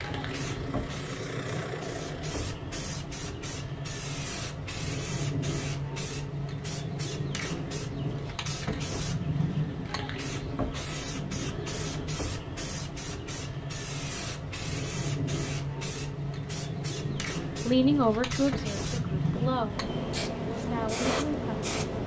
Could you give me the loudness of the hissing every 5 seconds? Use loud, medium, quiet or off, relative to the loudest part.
medium, loud, loud, loud, loud.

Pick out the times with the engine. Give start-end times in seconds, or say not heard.
0.0-2.5.